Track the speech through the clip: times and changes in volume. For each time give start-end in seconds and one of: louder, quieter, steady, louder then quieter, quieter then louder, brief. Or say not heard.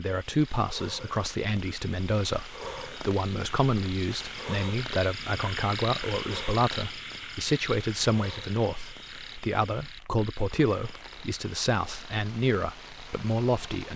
0.0-13.9 steady.